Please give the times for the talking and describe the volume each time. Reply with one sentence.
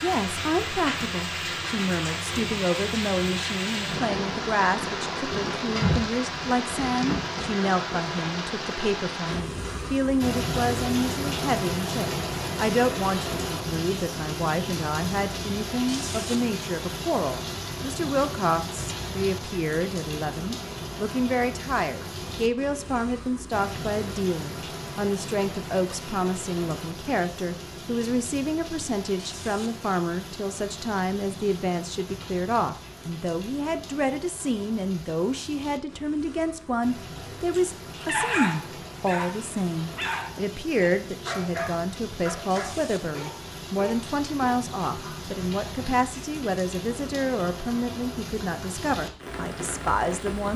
The talking can be heard from 0.0 to 50.5 s, at a steady volume.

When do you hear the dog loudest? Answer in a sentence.
The volume of the dog peaks at 38 seconds.